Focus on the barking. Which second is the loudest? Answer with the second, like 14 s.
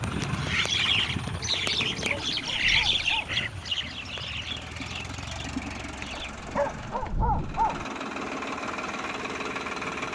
7 s.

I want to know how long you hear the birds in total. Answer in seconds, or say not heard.
6 s.